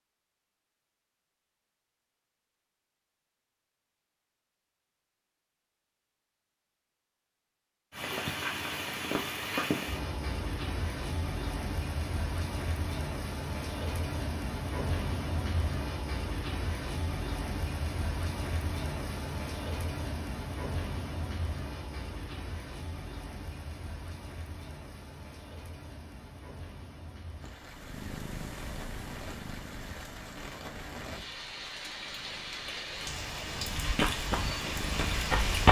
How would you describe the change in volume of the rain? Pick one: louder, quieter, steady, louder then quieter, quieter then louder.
quieter then louder.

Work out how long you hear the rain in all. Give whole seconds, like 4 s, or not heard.
28 s.